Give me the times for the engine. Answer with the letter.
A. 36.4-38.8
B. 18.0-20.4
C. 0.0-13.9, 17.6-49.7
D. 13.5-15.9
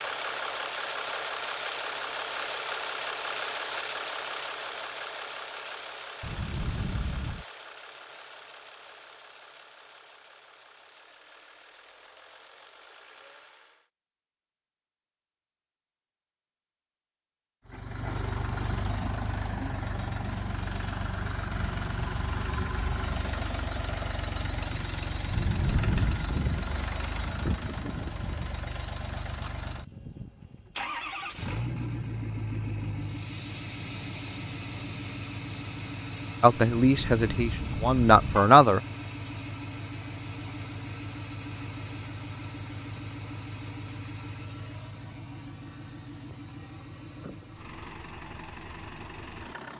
C.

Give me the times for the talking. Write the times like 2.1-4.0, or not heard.
36.4-38.8.